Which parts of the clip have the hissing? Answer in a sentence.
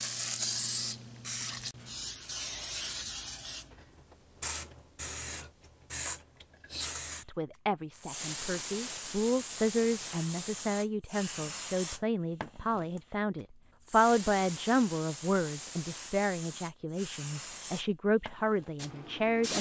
The hissing can be heard from 0.0 to 19.5 s.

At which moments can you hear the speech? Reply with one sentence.
You can hear the speech from 7.2 to 19.5 s.